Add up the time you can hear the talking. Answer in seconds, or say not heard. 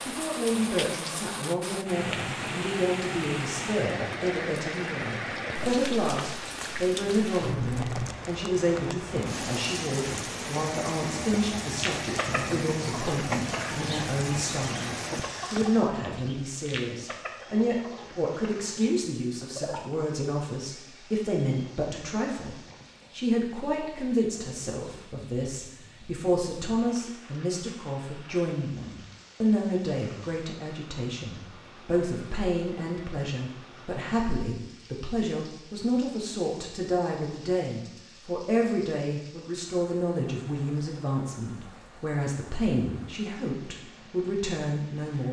45 s.